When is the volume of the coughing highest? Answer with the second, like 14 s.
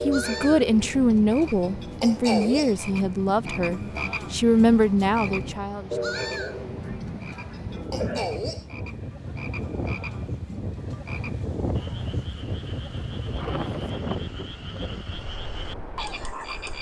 8 s.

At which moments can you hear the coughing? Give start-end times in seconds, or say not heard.
6.8-8.3.